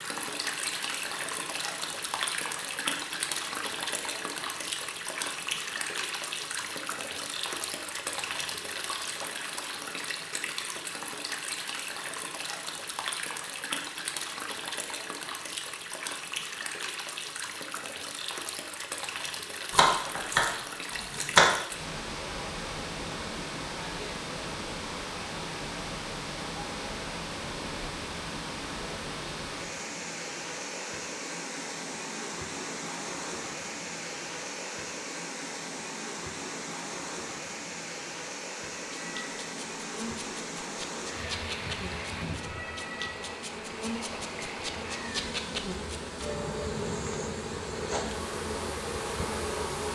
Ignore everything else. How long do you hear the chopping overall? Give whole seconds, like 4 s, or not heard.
2 s.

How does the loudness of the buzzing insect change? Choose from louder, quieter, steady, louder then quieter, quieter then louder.
louder.